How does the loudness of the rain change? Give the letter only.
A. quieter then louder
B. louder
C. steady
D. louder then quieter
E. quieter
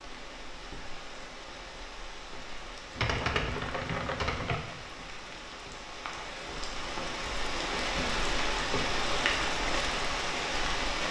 B.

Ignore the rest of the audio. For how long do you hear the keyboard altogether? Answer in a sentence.
You can hear the keyboard for 2 seconds altogether.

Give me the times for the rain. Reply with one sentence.
The rain can be heard from 0.0 to 11.0 s.